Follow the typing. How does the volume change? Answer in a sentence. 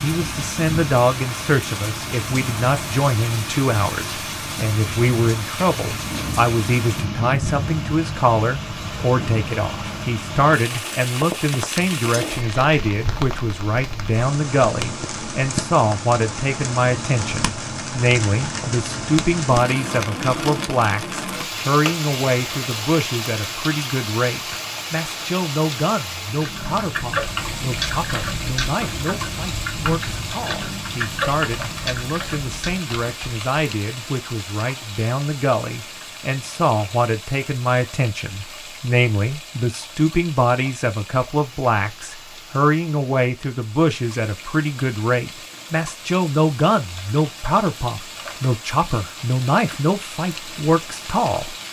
The loudness of the typing goes down.